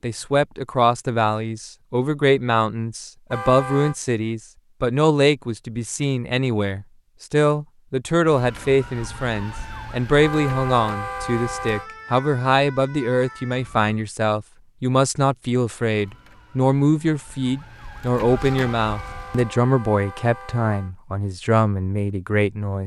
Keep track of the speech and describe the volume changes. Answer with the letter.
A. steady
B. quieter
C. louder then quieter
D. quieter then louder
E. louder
A.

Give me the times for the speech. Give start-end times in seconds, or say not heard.
0.0-22.8.